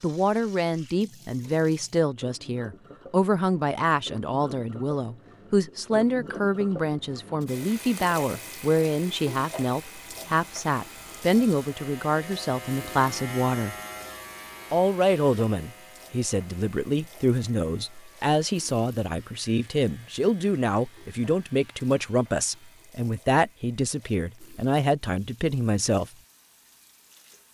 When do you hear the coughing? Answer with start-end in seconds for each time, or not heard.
not heard.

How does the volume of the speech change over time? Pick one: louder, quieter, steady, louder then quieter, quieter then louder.
steady.